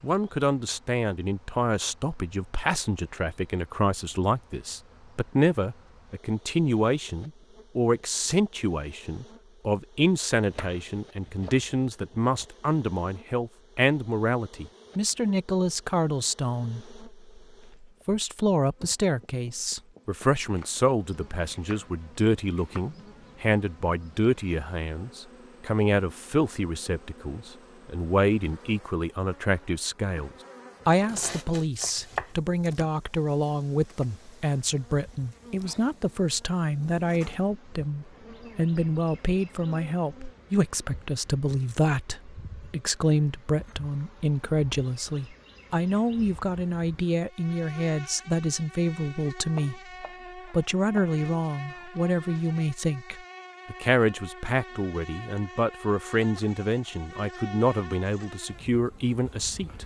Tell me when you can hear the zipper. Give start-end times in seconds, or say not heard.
not heard.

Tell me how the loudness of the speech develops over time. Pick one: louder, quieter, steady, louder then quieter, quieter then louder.
steady.